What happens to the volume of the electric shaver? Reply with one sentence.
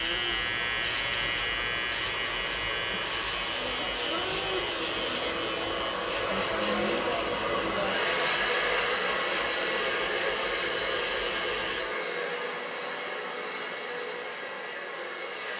The loudness of the electric shaver goes down.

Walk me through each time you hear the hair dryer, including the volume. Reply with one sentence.
The hair dryer can be heard from 0.0 to 15.5 s, getting louder then quieter.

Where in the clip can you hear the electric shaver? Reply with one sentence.
You can hear the electric shaver from 0.0 to 11.8 s.